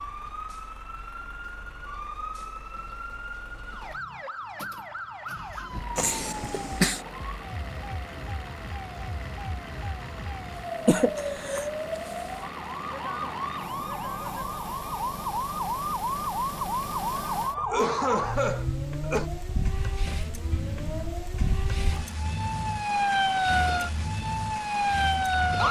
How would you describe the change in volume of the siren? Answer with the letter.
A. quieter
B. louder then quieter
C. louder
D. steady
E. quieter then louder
C.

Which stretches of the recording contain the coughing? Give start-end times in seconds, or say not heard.
6.0-7.0, 10.8-11.7, 17.6-19.3.